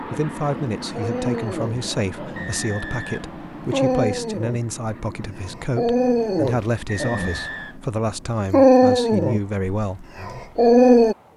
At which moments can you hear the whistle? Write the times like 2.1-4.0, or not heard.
2.4-4.0, 6.8-7.8.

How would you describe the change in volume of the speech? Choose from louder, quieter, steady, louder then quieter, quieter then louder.
steady.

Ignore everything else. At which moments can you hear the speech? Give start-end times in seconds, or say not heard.
0.0-10.0.